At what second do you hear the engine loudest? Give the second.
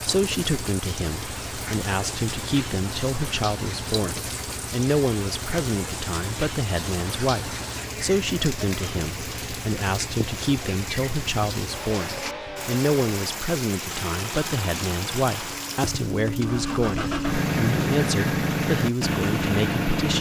18 s.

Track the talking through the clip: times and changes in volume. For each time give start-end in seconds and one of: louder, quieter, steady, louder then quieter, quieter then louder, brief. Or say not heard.
0.1-20.1 steady.